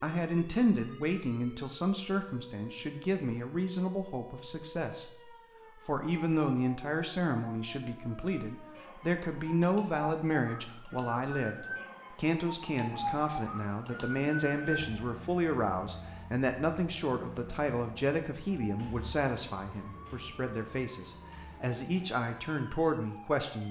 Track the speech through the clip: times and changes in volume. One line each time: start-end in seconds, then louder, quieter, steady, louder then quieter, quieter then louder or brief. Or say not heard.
0.0-23.6 steady.